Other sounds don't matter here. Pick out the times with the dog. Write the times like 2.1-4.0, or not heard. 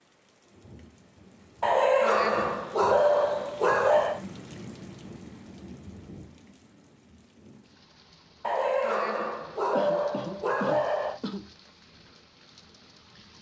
1.6-4.2, 8.4-11.2.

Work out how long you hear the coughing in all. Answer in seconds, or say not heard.
2 s.